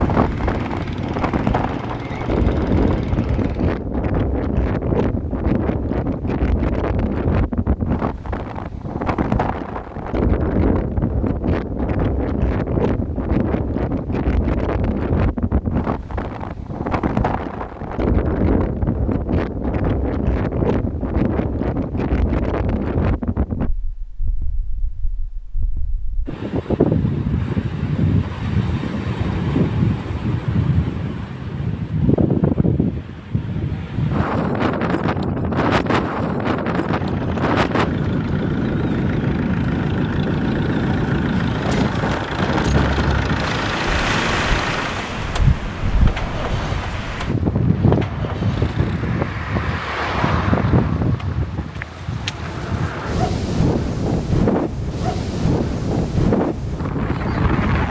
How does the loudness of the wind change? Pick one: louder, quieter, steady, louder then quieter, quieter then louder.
steady.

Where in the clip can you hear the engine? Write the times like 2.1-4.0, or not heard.
0.0-3.8, 36.9-49.1.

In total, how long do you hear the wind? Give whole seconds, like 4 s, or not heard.
58 s.